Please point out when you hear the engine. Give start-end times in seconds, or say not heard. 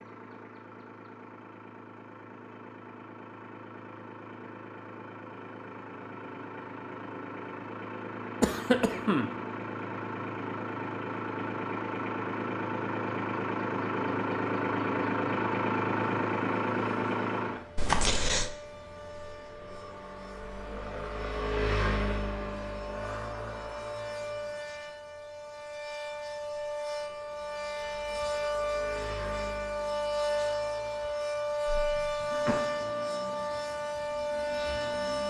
0.0-35.2.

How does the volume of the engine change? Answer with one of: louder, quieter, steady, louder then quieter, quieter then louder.
louder then quieter.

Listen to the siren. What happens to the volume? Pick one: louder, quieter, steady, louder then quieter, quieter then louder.
louder.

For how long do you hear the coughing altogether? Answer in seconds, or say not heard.
3 s.